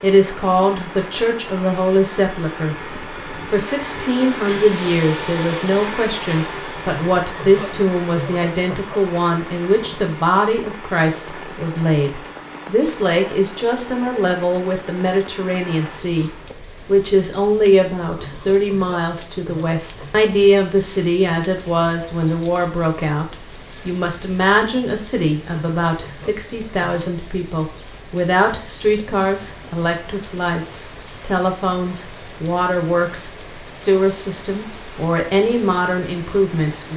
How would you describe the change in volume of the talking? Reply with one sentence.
The loudness of the talking stays about the same.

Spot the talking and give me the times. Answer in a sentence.
The talking can be heard from 0.0 to 36.9 s.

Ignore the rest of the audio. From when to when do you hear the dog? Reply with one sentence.
The dog can't be heard in this clip.